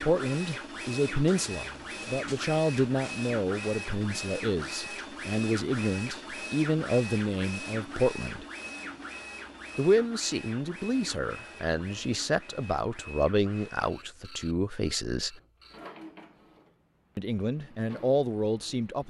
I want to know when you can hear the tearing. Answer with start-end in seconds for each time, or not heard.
not heard.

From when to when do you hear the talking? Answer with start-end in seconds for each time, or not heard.
0.0-8.4, 9.8-15.4, 17.1-19.0.